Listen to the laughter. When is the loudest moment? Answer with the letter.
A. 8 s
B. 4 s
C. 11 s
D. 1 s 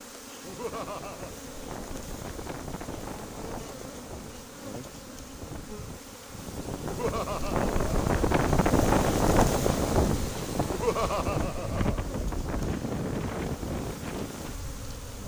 C.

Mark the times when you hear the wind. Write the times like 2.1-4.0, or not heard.
0.0-15.2.